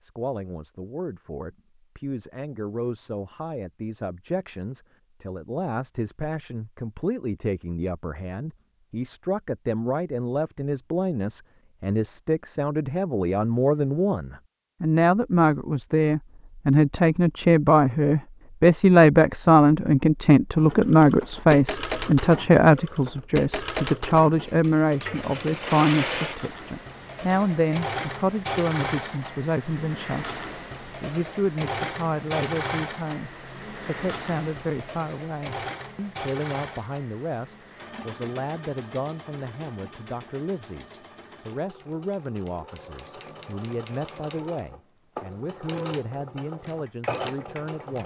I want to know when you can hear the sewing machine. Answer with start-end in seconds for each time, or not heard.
20.6-48.0.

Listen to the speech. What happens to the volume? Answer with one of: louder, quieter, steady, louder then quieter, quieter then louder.
louder then quieter.